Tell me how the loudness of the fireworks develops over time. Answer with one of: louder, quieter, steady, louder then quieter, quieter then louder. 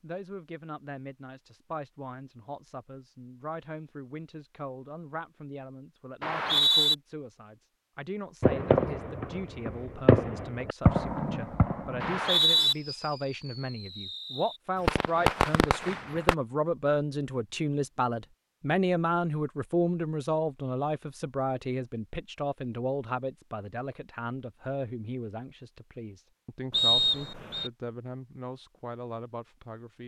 quieter then louder.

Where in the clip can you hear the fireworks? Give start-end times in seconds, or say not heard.
8.4-16.4.